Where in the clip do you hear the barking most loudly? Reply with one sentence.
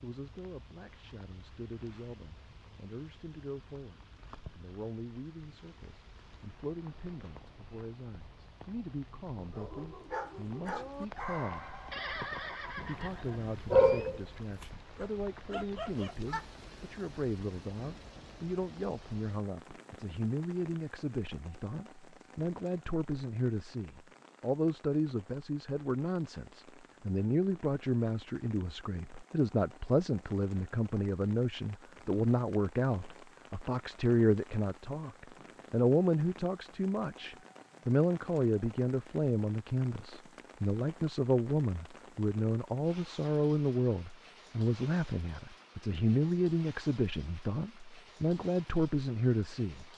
The volume of the barking peaks at 14 seconds.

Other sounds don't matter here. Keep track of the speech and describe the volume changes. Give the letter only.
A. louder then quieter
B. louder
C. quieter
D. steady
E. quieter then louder
B.